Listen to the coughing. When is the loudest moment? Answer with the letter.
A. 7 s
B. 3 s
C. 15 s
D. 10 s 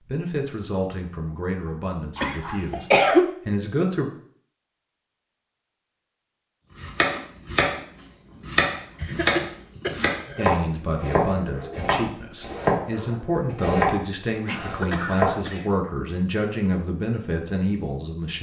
B.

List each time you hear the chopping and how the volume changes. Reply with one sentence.
You can hear the chopping from 6.8 to 15.3 s, at a steady volume.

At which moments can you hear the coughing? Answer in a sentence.
You can hear the coughing from 2.2 to 3.2 s, from 9.0 to 10.4 s and from 14.4 to 15.7 s.